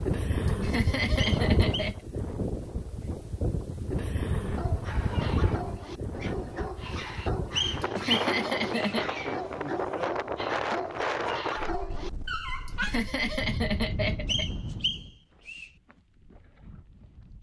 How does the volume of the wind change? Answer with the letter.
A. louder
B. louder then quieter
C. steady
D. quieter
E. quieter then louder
D.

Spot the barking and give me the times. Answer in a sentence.
The barking can be heard from 4.4 to 13.1 s.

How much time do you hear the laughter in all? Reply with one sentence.
The laughter can be heard for 5 seconds in total.